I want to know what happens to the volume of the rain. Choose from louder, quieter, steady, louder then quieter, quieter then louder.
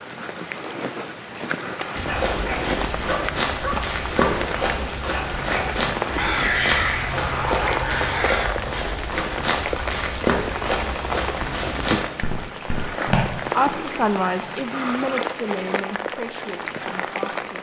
steady.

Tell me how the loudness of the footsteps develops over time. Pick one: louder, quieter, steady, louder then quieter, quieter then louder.
steady.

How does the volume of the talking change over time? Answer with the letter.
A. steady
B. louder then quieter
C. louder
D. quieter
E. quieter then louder
D.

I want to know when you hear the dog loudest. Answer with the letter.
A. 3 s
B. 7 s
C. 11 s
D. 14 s
B.